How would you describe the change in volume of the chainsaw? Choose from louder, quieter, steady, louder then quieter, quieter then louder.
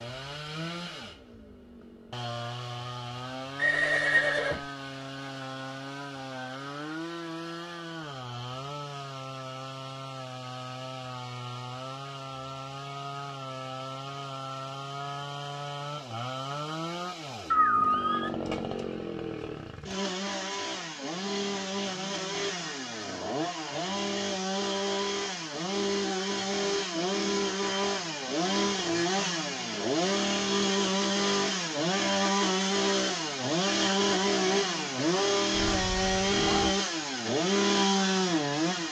louder.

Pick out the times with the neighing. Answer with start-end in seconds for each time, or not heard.
3.5-4.6, 17.5-18.3, 35.6-36.7.